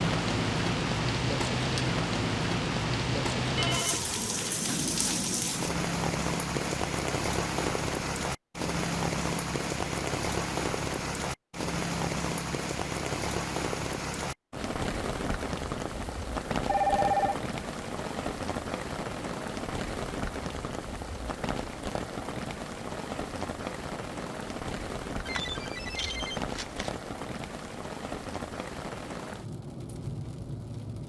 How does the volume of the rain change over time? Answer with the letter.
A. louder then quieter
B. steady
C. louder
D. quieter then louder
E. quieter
E.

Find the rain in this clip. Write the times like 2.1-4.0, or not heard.
0.0-31.0.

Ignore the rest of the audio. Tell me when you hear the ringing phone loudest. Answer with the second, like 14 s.
17 s.